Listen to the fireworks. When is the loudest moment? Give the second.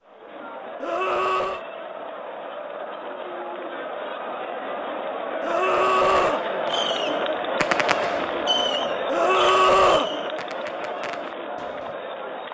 8 s.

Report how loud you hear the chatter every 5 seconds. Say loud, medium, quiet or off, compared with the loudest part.
medium, loud, medium.